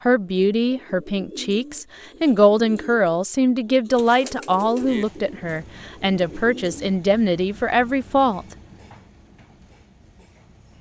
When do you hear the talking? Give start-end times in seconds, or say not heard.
0.1-8.6.